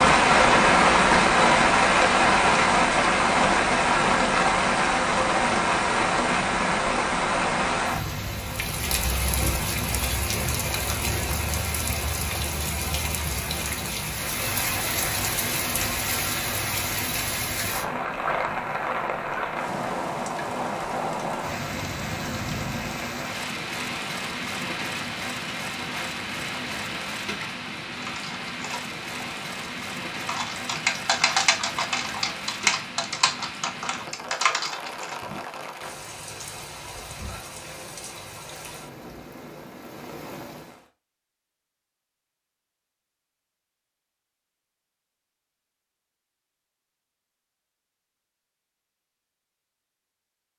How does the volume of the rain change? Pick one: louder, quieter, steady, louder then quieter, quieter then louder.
quieter.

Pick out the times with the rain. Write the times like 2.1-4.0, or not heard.
0.0-40.9.